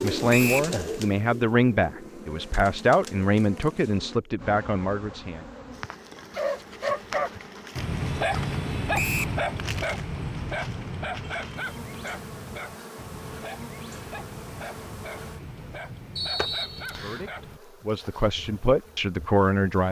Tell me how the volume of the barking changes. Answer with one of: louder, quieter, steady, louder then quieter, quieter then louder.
quieter.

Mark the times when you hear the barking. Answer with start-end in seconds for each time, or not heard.
6.2-17.6.